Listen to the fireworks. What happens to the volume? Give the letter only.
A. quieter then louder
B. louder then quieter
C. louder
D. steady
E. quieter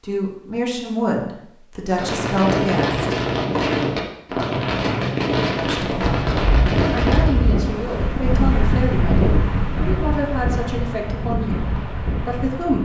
D.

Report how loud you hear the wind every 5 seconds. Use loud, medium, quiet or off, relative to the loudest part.
off, loud, medium.